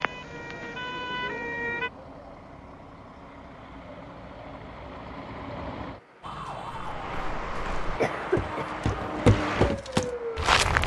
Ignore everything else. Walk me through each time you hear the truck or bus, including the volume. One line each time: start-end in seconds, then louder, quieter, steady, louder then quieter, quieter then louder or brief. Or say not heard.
0.0-10.6 louder.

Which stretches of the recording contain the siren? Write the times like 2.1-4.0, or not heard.
0.0-1.9, 6.2-10.6.